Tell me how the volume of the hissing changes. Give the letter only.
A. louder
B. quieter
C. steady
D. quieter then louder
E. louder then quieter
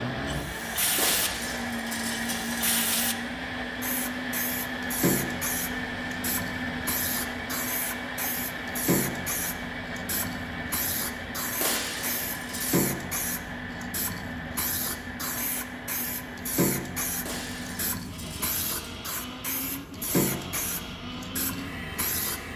C.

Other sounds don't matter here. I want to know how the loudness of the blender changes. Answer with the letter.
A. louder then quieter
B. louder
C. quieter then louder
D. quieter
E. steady
D.